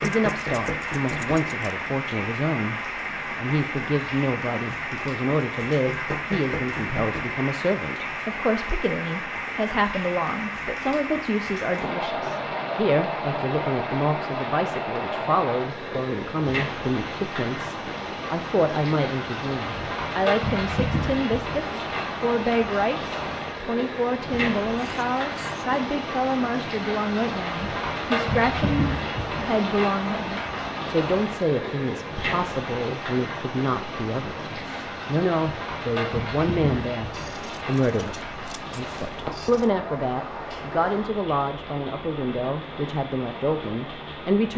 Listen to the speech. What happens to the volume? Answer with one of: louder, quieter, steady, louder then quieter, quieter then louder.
steady.